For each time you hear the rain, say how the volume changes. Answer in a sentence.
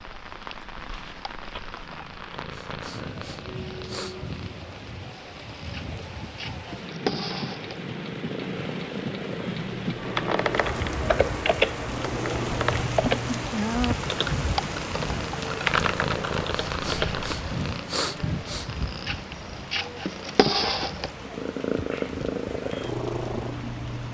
The rain can be heard from 0.0 to 24.1 s, getting louder then quieter.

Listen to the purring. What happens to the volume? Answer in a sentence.
The volume of the purring goes up.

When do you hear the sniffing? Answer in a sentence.
You can hear the sniffing from 2.5 to 4.4 s and from 16.6 to 18.8 s.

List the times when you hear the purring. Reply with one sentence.
You can hear the purring from 0.0 to 24.1 s.